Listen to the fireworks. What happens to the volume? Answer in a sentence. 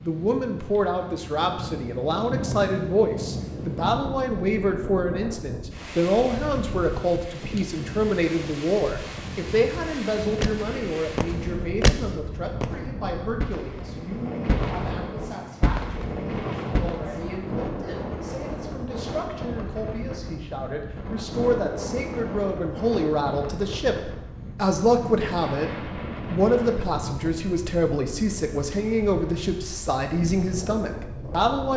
The volume of the fireworks goes down, then up.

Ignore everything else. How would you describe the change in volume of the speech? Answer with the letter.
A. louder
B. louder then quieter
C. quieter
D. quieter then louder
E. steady
D.